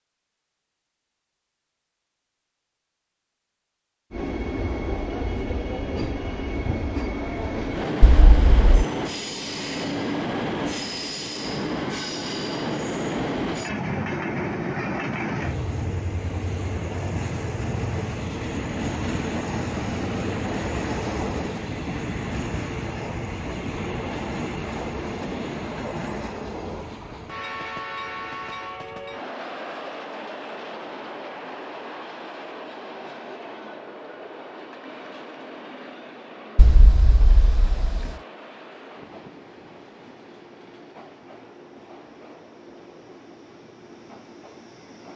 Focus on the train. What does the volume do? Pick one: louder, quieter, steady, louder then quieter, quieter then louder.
quieter.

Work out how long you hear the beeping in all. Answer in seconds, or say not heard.
2 s.